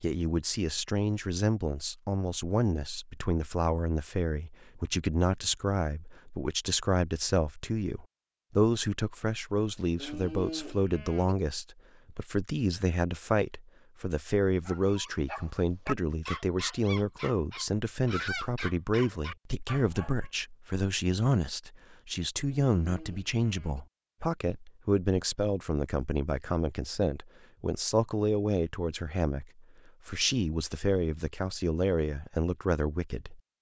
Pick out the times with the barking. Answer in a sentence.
You can hear the barking from 14.7 to 20.3 s.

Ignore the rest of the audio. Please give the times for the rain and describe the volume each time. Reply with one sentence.
The rain can't be heard in this clip.